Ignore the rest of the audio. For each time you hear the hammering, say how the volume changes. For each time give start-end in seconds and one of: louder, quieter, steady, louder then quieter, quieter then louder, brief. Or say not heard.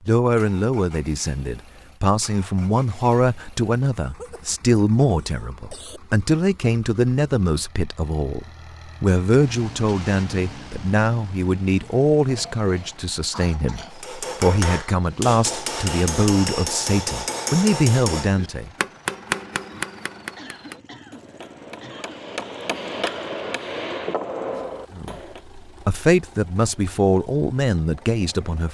13.9-25.4 quieter then louder.